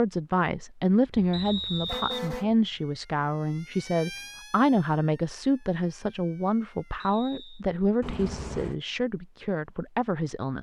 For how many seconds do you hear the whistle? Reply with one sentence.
You can hear the whistle for 2 seconds altogether.